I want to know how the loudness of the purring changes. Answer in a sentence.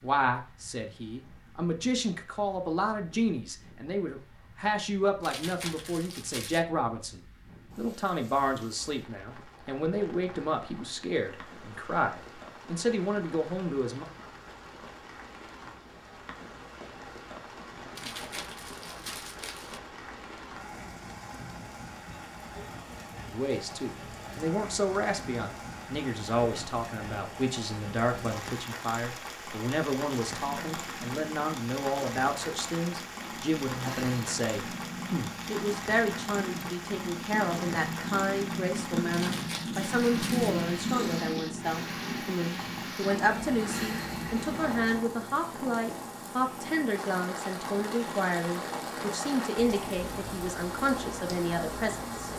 The volume of the purring goes up, then down.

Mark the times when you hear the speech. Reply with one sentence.
You can hear the speech from 0.0 to 14.1 s and from 23.3 to 52.3 s.